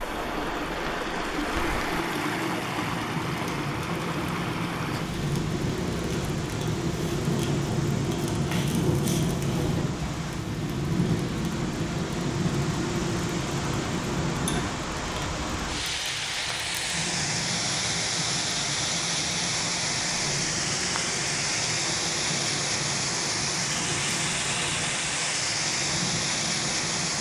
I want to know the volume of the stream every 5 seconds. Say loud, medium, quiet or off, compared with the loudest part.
loud, medium, medium, loud, loud, loud.